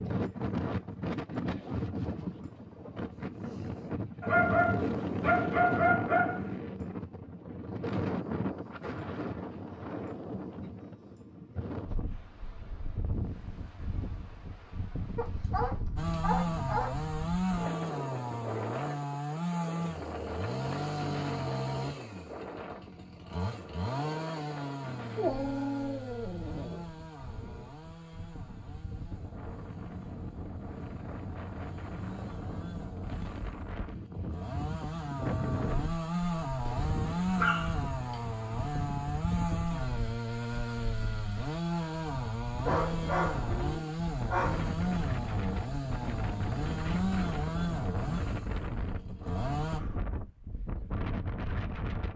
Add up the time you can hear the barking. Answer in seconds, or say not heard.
11 s.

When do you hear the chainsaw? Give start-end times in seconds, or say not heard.
15.9-49.8.